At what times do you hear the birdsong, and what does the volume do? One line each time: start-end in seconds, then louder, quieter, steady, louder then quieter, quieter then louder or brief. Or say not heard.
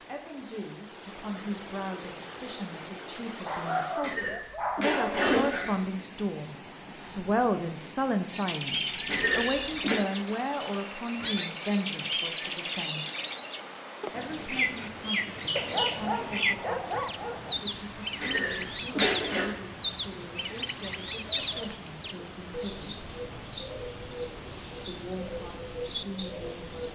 8.3-26.9 steady.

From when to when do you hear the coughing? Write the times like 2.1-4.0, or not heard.
4.0-5.8, 9.1-10.0, 18.1-19.4.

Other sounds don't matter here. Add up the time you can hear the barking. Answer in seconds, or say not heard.
4 s.